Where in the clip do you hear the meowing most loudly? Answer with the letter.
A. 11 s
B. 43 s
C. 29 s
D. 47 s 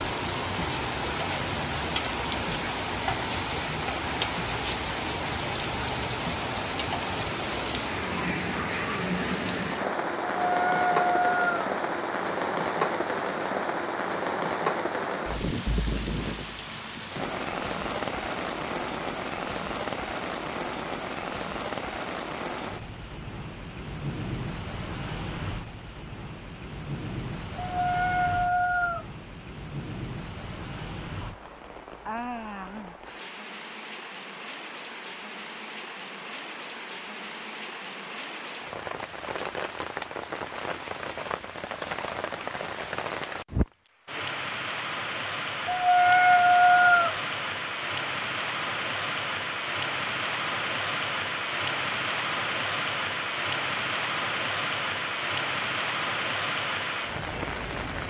D.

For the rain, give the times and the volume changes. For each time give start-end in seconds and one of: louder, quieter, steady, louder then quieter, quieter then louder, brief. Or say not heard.
0.0-58.0 quieter then louder.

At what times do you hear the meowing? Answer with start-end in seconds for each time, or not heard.
10.4-11.7, 27.6-29.1, 45.6-47.1.